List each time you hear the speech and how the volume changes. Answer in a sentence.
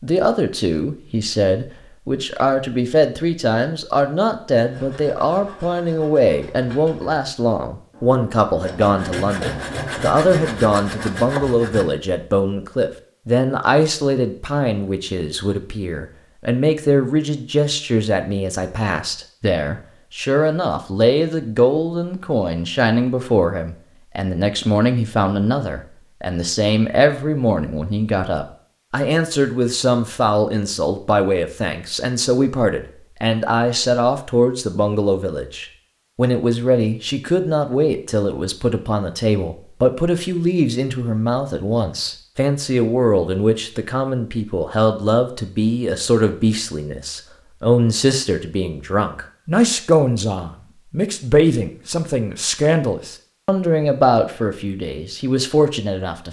You can hear the speech from 0.0 to 56.2 s, at a steady volume.